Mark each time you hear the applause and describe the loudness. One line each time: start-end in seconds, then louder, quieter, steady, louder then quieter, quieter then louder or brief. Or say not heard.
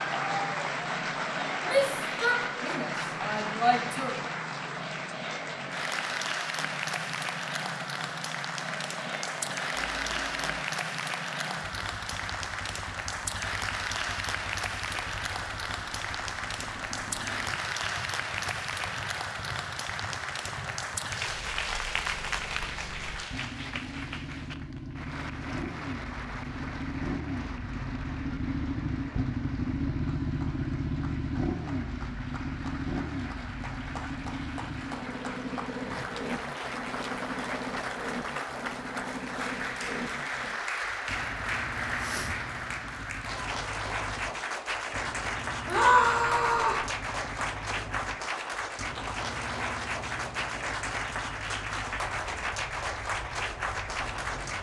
0.0-54.5 quieter then louder.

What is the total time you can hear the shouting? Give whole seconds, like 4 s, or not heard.
4 s.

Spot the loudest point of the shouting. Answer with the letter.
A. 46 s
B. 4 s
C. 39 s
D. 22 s
A.